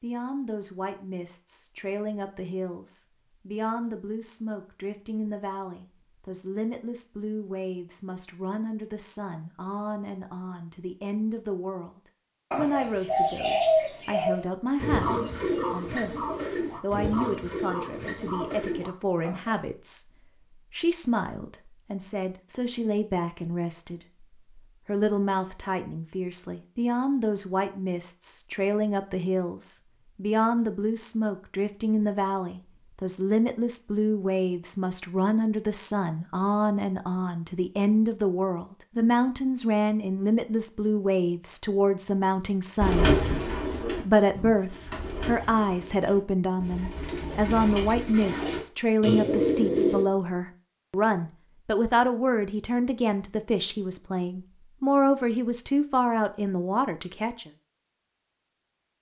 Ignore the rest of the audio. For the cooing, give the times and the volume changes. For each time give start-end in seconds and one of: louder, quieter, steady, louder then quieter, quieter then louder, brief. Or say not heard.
12.5-19.6 quieter
42.8-50.0 quieter then louder.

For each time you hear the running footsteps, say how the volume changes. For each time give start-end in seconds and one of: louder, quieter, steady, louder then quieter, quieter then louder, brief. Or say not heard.
not heard.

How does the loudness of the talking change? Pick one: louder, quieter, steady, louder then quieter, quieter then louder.
louder.